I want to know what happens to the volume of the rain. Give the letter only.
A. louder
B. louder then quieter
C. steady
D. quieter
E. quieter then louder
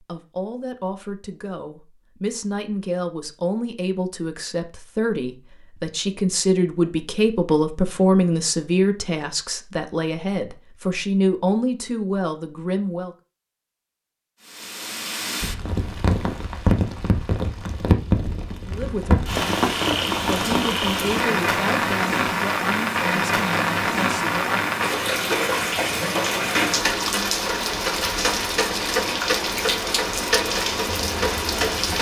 C.